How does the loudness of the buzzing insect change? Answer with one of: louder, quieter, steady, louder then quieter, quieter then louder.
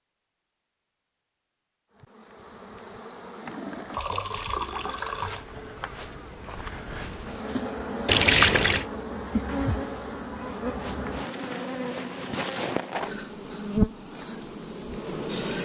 louder.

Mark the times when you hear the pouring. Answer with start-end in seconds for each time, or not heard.
3.9-5.4, 8.1-8.8.